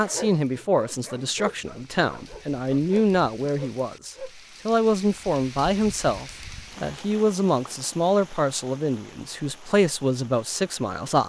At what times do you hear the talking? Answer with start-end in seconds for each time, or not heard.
0.0-11.2.